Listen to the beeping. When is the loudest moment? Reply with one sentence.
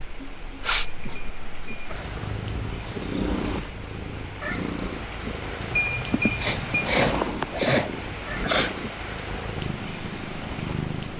The loudest moment of the beeping is at 6 seconds.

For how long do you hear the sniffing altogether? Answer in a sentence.
The sniffing can be heard for 3 seconds in total.